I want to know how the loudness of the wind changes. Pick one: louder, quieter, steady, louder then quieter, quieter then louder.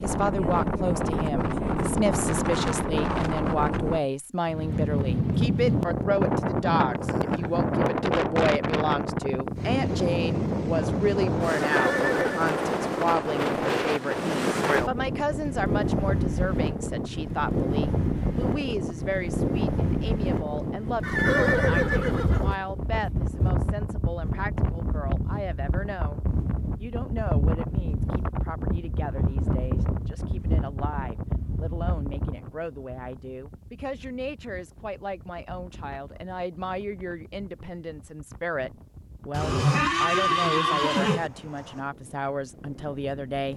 quieter.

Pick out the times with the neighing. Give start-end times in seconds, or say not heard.
11.7-12.4, 21.0-22.6, 39.3-41.3.